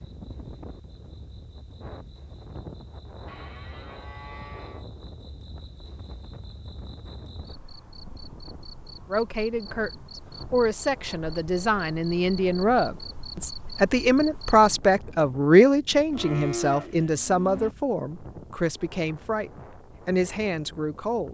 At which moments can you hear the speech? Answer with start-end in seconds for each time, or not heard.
9.1-9.9, 10.5-21.2.